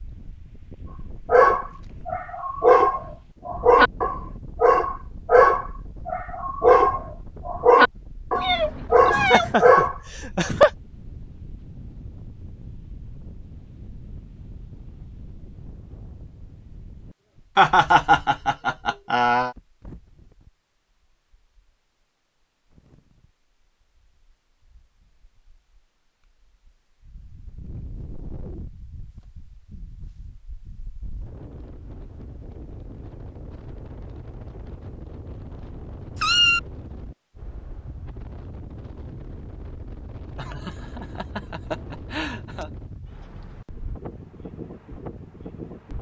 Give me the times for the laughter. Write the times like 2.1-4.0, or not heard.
9.1-10.7, 17.6-19.6, 40.4-42.7.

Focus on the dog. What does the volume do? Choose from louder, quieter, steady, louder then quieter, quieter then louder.
steady.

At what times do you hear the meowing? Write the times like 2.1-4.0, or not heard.
8.3-9.6, 36.1-36.6.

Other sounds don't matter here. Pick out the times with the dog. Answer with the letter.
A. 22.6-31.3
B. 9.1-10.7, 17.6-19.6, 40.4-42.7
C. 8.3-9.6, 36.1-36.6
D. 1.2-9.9
D.